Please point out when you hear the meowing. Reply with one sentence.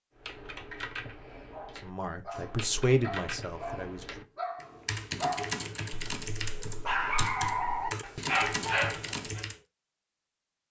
You can't hear the meowing here.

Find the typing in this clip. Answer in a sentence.
The typing can be heard from 0.1 to 9.6 s.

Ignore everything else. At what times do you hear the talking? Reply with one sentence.
You can hear the talking from 1.8 to 4.2 s.